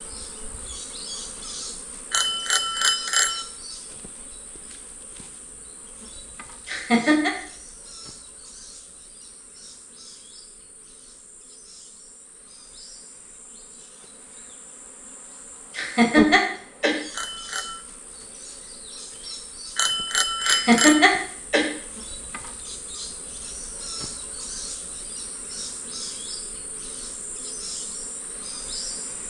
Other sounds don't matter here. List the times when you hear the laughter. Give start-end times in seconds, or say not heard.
6.7-7.3, 15.8-16.9, 20.4-21.6.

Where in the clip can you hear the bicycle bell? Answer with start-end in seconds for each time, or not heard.
2.1-3.5, 17.1-17.9, 19.8-21.1.